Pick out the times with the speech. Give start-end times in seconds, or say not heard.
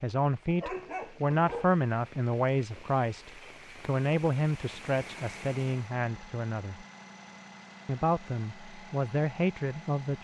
0.0-6.8, 7.8-10.1.